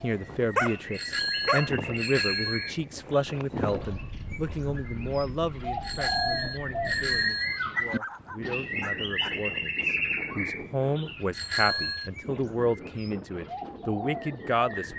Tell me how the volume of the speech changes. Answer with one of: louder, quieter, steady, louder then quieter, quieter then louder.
quieter then louder.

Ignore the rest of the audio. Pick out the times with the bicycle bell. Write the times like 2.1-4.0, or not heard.
0.9-2.8, 5.8-7.6, 11.3-12.1.